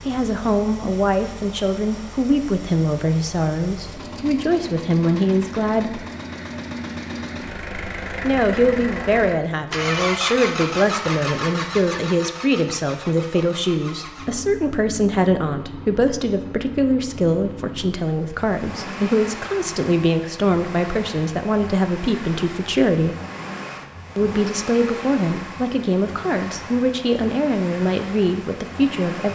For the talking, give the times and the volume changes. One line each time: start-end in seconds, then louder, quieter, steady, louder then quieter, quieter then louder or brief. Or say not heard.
0.1-6.0 steady
8.2-23.1 steady
24.1-29.2 steady.